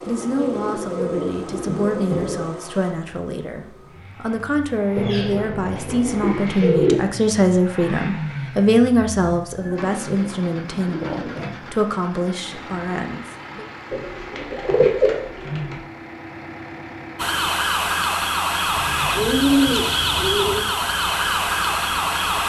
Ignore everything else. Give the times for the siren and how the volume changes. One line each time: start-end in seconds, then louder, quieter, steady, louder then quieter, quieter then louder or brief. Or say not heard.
17.1-22.4 steady.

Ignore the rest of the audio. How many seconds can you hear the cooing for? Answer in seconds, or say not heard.
10 s.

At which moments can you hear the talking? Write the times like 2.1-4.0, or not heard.
0.1-13.7.